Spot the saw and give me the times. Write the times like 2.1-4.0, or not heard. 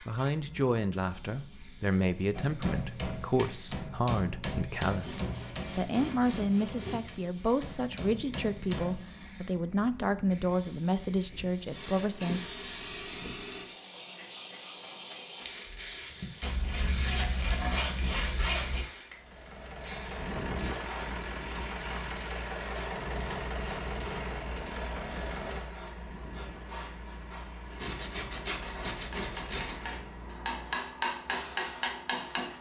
5.0-7.0, 16.4-18.9, 27.8-29.8.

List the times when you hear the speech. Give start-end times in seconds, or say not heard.
0.0-12.4.